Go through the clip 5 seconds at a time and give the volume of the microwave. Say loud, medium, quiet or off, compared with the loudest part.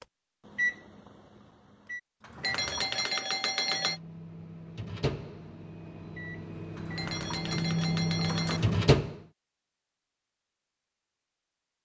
medium, loud, off.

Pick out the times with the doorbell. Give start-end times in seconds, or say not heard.
2.4-4.0, 7.0-8.6.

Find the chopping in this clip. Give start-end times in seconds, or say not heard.
not heard.